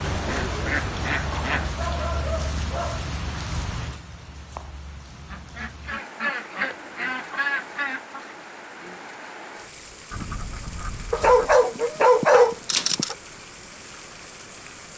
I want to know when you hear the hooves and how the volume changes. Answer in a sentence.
The hooves can't be heard in this clip.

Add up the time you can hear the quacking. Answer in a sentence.
You can hear the quacking for 6 seconds altogether.